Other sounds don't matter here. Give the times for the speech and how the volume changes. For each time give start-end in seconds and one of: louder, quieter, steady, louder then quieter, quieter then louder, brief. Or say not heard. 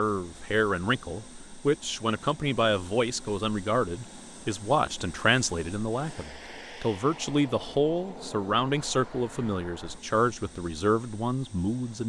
0.0-12.0 steady.